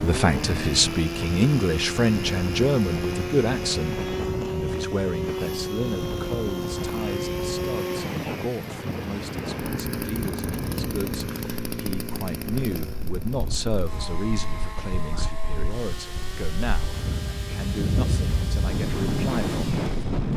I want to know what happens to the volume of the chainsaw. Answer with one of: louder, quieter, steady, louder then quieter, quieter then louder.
quieter.